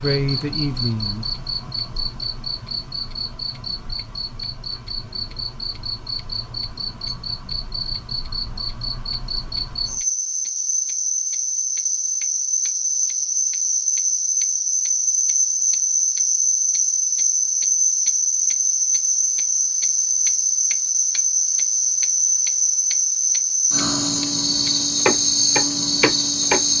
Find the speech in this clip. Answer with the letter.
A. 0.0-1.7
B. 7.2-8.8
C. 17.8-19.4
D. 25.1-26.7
A.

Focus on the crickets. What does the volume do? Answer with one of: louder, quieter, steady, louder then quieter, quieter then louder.
louder.